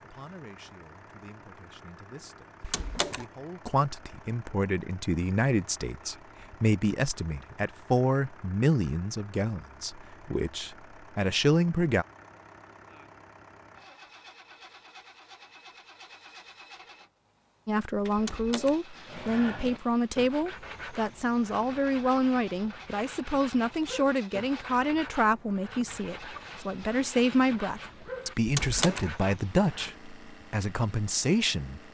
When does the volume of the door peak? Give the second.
29 s.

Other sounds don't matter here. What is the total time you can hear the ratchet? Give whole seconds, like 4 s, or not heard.
not heard.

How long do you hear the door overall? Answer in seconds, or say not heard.
2 s.